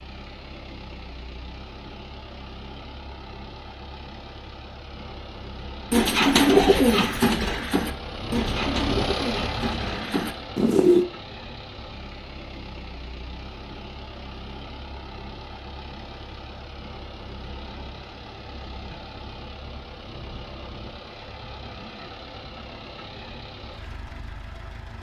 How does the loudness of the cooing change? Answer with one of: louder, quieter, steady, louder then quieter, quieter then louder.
quieter.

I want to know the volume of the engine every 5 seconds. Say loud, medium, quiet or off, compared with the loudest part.
medium, loud, medium, medium, medium.